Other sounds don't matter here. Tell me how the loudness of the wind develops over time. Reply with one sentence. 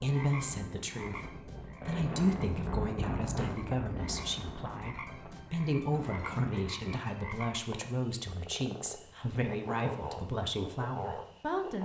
The volume of the wind goes up, then down.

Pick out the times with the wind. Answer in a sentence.
You can hear the wind from 0.2 to 6.8 s.